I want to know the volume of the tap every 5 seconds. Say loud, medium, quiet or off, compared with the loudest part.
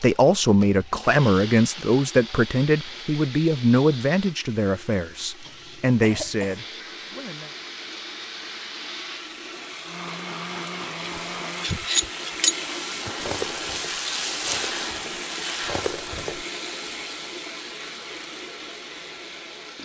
quiet, medium, loud, loud.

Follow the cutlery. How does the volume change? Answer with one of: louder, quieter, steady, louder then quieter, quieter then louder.
quieter then louder.